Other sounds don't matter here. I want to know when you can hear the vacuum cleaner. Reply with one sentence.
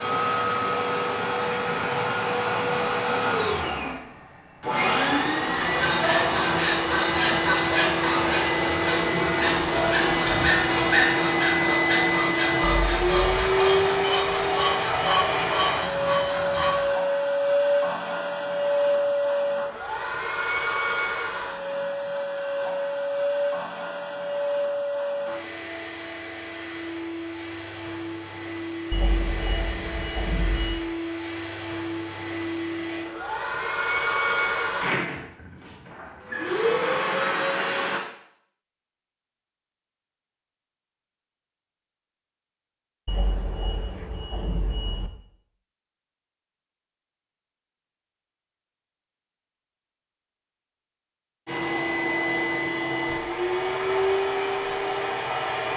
The vacuum cleaner can be heard from 0.0 to 38.0 s and from 51.5 to 55.7 s.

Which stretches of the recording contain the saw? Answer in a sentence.
You can hear the saw from 5.5 to 16.9 s.